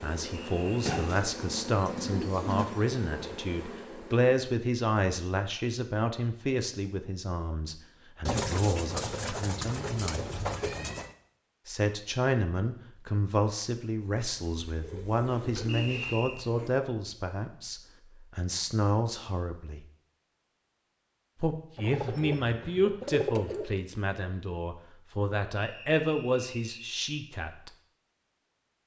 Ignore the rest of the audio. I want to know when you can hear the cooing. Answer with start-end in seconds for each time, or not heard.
0.8-2.6, 8.2-11.1, 14.7-16.2, 21.8-23.6.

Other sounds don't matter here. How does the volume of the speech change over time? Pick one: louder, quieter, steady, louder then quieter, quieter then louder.
steady.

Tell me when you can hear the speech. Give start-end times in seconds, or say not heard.
0.0-10.2, 11.7-19.9, 21.4-27.7.